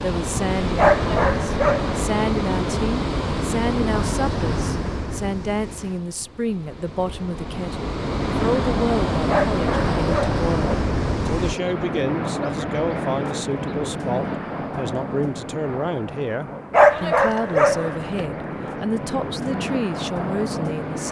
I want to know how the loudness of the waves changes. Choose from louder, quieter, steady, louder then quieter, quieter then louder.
quieter then louder.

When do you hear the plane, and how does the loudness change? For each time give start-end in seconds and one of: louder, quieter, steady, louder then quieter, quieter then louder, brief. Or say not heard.
8.2-21.0 quieter then louder.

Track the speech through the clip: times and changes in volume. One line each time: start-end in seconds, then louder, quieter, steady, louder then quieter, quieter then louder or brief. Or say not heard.
0.0-21.0 steady.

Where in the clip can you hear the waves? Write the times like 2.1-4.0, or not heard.
0.0-11.6.